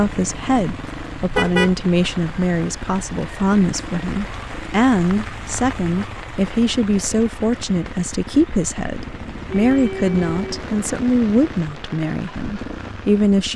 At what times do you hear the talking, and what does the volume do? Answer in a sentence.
You can hear the talking from 0.0 to 13.5 s, at a steady volume.